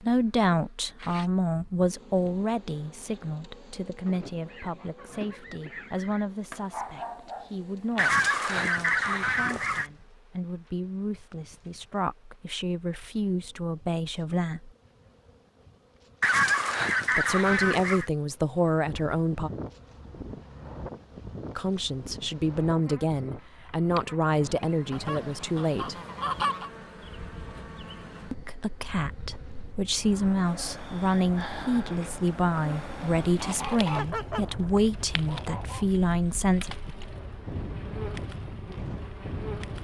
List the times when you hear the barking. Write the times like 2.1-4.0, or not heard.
6.5-8.2.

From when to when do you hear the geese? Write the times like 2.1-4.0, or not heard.
4.0-6.2, 8.0-9.9, 16.2-18.1, 24.9-26.7, 33.4-35.9.